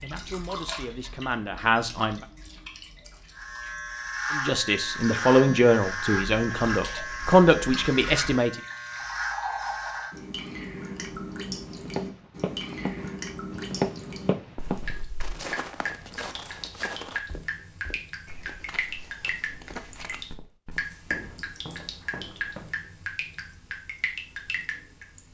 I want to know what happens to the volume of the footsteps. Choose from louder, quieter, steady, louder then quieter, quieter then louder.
quieter.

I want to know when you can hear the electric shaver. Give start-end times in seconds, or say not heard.
3.4-10.2.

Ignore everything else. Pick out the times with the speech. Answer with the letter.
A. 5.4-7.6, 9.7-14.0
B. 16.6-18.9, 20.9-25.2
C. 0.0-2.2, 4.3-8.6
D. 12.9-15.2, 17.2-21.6
C.